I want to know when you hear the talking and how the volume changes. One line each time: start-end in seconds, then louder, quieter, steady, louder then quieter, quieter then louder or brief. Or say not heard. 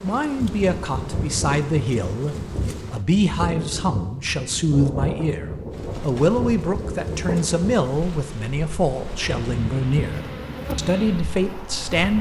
0.0-12.1 steady.